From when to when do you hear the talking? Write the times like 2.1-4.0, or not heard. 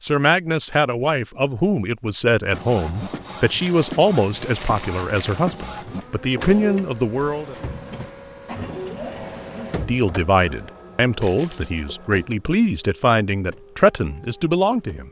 0.0-7.5, 9.6-15.0.